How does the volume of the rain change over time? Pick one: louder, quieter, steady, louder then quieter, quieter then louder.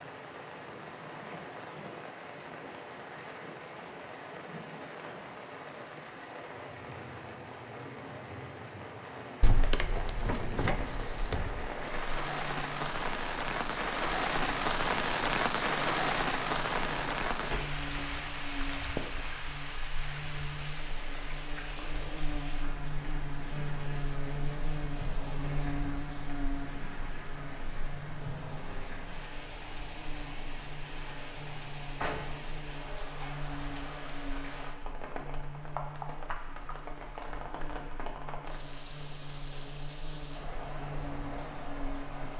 louder then quieter.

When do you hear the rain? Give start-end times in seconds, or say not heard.
0.0-42.3.